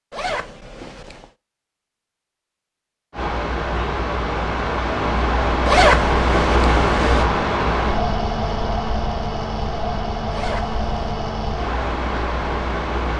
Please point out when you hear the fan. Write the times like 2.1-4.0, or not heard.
3.1-13.1.